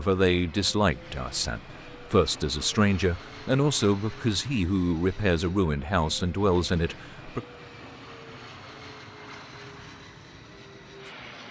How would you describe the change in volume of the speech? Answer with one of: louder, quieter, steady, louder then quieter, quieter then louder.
steady.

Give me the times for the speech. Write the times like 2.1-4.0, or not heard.
0.0-7.4.